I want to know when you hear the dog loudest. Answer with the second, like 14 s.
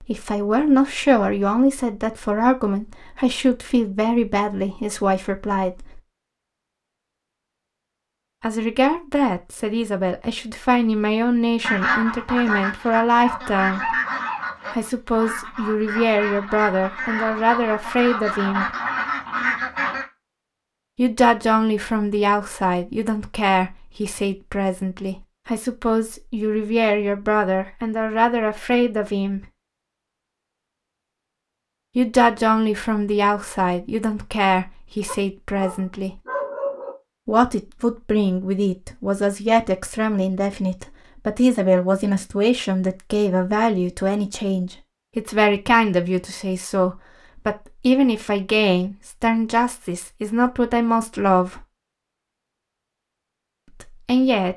37 s.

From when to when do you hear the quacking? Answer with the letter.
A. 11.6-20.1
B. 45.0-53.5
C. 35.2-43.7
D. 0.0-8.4
A.